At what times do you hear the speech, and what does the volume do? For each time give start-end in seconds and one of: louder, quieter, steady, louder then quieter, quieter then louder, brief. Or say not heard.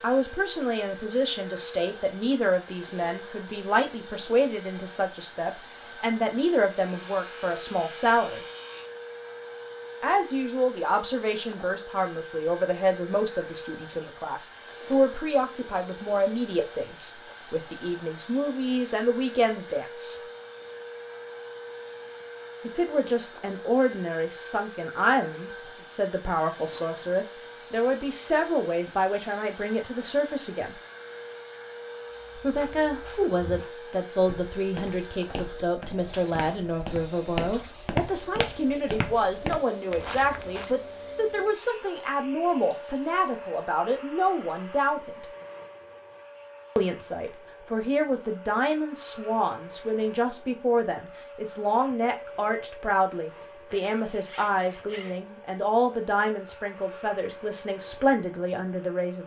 0.0-8.4 steady
10.0-20.2 steady
22.6-30.8 steady
32.4-45.2 steady
46.8-59.2 steady.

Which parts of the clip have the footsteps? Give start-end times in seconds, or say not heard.
32.1-40.6.